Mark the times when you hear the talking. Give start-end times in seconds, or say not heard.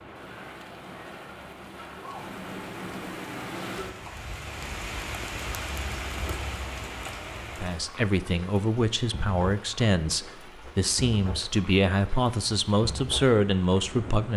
7.5-14.3.